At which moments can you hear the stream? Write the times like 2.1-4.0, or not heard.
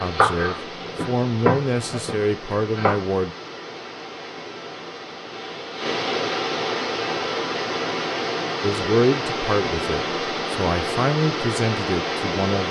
0.0-12.6.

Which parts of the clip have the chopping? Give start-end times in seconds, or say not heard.
0.0-3.0.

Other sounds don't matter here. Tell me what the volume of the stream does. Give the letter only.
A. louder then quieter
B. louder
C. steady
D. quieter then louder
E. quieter
B.